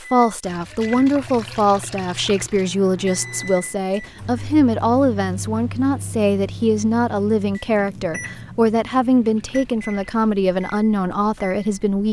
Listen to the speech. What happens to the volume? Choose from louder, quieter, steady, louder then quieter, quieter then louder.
steady.